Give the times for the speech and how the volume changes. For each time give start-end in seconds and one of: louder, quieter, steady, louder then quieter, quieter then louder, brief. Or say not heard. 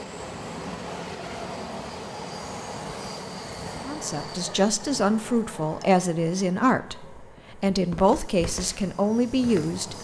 3.9-9.9 steady.